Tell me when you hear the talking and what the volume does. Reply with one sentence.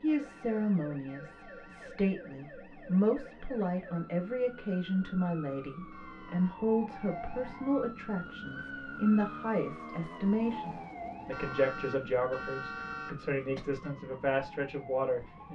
You can hear the talking from 0.0 to 15.4 s, at a steady volume.